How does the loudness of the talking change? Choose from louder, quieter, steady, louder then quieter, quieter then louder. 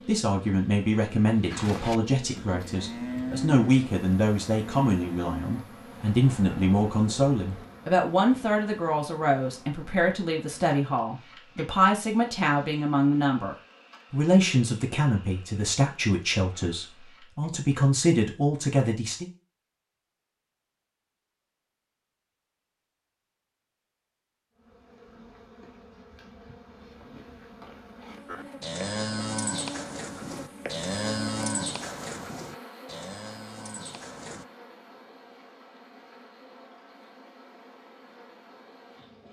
steady.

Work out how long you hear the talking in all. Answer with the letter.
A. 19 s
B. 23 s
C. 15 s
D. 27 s
A.